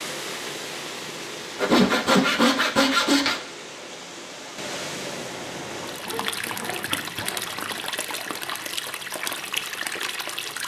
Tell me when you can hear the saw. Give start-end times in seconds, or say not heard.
1.6-3.4, 6.0-7.8.